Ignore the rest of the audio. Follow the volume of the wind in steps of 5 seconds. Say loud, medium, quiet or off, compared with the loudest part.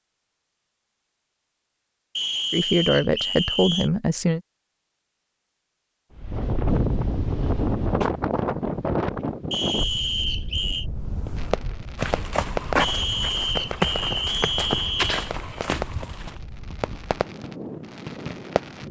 off, loud, quiet, quiet.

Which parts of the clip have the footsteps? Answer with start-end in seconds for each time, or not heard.
10.9-16.4.